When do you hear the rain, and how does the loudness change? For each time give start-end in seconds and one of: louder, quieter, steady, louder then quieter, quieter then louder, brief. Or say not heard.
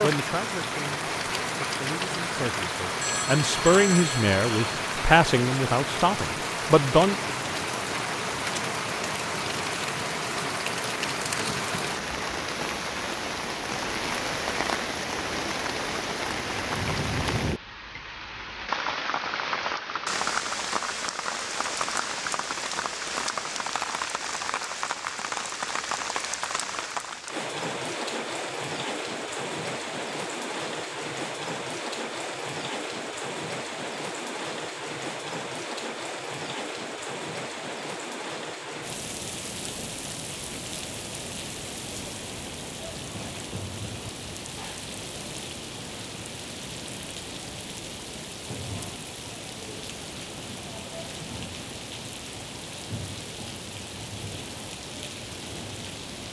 0.0-56.2 quieter.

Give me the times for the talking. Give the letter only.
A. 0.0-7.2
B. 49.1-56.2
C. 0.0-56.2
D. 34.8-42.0
A.